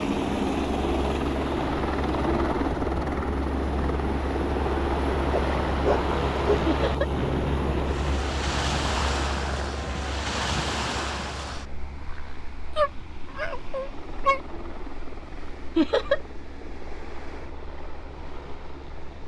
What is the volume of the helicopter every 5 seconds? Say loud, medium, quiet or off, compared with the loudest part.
loud, loud, quiet, quiet.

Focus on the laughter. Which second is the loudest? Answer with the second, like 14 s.
16 s.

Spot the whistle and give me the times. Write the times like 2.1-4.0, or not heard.
not heard.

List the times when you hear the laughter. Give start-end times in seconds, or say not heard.
6.7-7.1, 15.8-16.2.